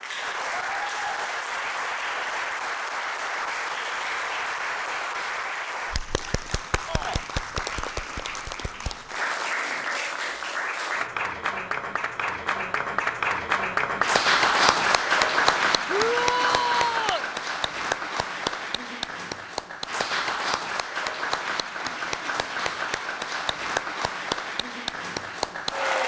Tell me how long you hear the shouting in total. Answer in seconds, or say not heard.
2 s.